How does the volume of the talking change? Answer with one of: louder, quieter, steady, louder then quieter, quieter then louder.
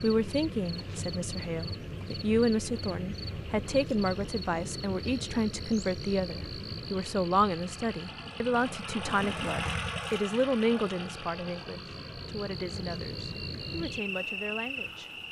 quieter.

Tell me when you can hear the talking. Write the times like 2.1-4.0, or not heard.
0.0-15.1.